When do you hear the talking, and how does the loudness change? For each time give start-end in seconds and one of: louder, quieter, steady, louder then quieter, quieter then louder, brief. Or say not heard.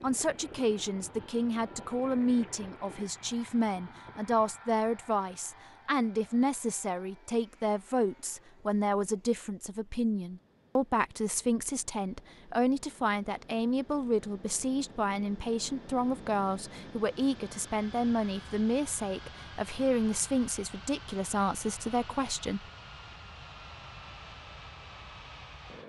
0.0-22.6 steady.